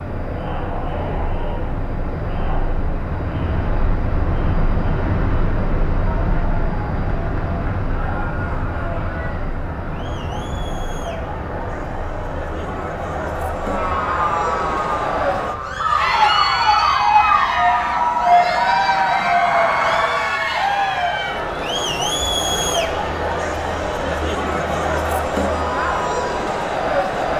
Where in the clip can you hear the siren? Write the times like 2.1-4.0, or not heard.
13.6-20.3.